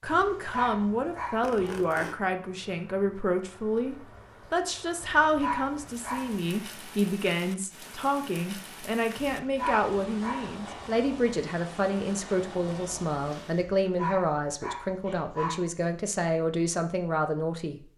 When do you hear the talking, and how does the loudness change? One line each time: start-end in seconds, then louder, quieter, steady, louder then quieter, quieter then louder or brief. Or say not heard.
0.0-17.9 steady.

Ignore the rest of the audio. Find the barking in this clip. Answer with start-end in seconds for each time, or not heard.
0.1-1.9, 5.0-6.5, 9.2-10.9, 13.6-15.6.